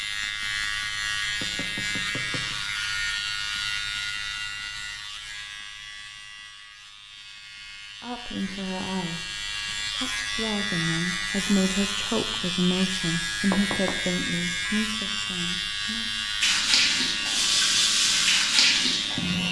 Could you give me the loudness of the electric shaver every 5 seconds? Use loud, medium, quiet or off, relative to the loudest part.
loud, medium, loud, loud.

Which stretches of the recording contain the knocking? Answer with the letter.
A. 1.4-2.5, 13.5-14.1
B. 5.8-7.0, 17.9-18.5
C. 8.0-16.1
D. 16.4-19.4
A.